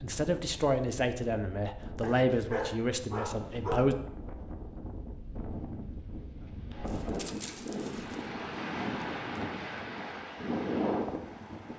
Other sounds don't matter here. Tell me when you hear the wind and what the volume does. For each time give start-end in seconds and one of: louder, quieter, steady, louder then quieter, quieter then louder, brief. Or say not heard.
0.0-11.7 louder.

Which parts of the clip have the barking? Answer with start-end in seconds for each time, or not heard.
2.0-4.0, 6.8-8.2.